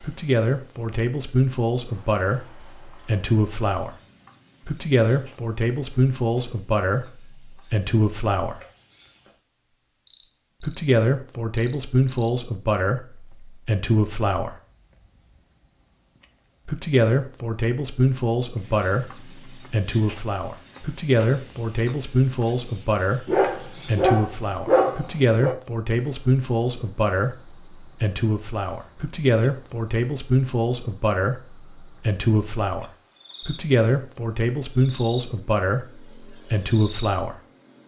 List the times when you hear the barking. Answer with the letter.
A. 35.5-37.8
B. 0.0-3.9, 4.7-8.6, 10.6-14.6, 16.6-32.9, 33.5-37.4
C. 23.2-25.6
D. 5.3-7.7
C.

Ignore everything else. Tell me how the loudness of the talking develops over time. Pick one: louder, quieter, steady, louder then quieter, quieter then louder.
steady.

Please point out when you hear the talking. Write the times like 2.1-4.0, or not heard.
0.0-3.9, 4.7-8.6, 10.6-14.6, 16.6-32.9, 33.5-37.4.